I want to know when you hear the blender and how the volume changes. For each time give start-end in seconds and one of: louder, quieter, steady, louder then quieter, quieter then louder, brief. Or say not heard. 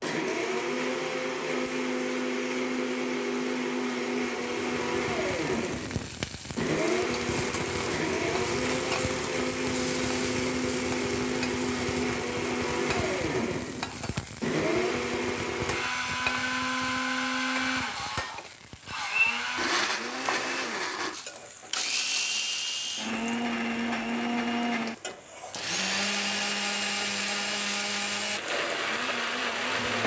0.0-30.0 steady.